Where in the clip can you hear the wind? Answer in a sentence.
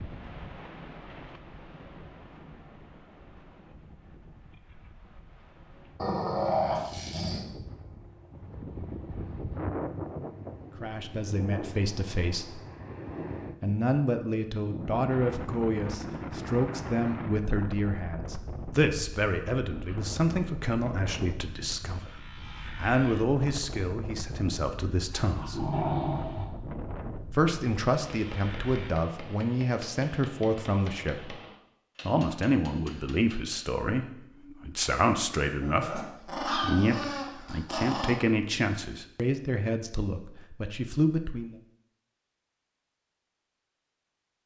The wind can be heard from 0.0 to 28.9 s.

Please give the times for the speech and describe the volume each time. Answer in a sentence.
The speech can be heard briefly from 10.8 to 12.6 s; from 13.6 to 25.6 s, at a steady volume; from 27.3 to 31.4 s, at a steady volume; and from 32.0 to 41.5 s, at a steady volume.